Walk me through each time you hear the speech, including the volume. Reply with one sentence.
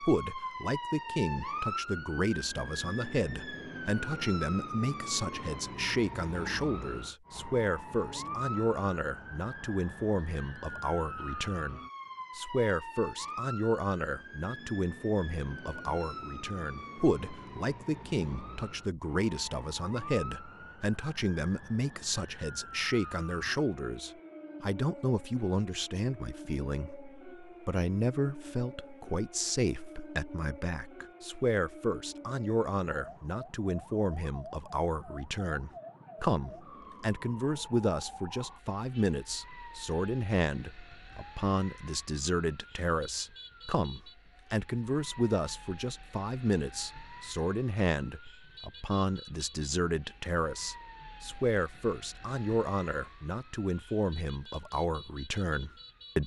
The speech can be heard from 0.0 to 56.2 s, at a steady volume.